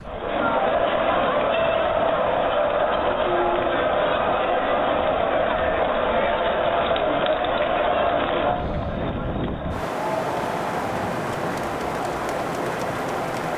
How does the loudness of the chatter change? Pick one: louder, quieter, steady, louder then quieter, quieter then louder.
quieter.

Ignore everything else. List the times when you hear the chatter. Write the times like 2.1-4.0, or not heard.
0.0-13.5.